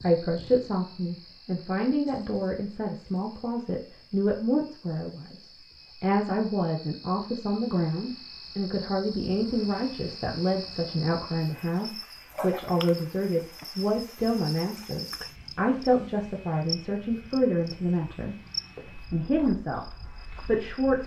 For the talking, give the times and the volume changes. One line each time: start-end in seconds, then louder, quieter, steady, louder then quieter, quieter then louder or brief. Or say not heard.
0.0-21.0 steady.